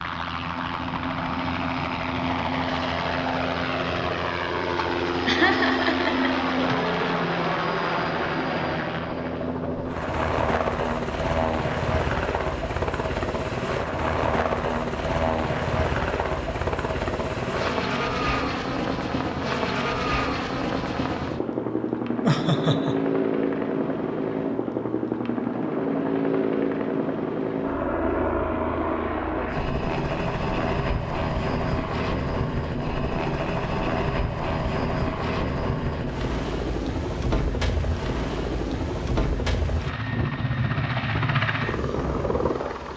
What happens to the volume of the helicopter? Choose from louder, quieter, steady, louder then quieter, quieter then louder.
steady.